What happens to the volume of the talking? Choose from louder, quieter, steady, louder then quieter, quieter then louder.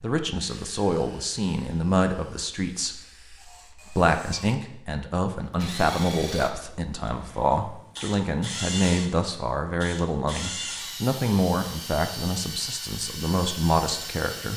steady.